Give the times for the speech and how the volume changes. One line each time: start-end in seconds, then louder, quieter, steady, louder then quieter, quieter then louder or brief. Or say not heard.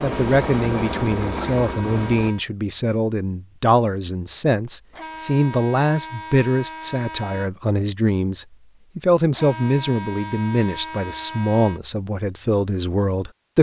0.0-13.5 steady.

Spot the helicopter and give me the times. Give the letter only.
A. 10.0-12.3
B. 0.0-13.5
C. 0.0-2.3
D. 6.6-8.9
C.